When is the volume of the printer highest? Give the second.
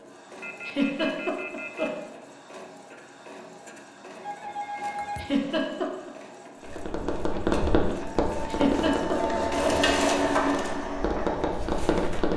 10 s.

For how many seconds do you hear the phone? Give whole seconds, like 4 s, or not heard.
4 s.